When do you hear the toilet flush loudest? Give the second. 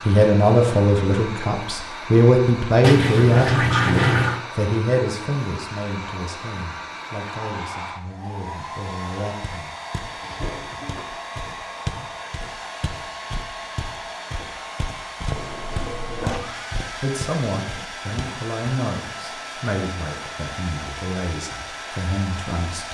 4 s.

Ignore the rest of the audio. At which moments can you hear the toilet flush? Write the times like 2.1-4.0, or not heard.
2.8-4.5, 10.2-11.1, 15.3-16.4.